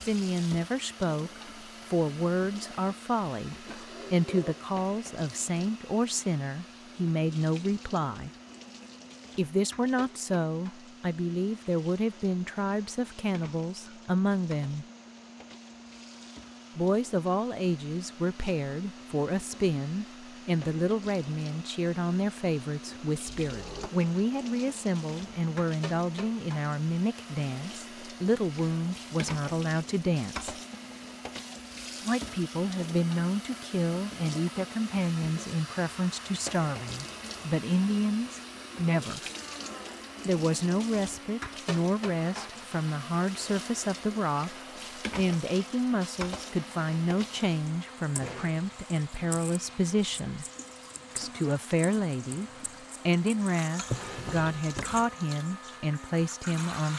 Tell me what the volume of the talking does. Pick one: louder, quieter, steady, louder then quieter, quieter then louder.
steady.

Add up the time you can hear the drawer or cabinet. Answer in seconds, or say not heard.
3 s.